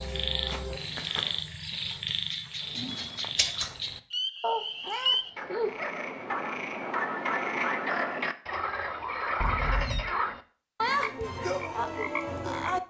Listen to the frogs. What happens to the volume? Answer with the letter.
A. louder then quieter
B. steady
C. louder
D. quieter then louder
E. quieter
B.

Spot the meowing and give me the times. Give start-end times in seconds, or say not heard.
0.2-1.4, 4.4-5.8, 9.4-10.1.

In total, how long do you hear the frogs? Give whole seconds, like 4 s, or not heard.
13 s.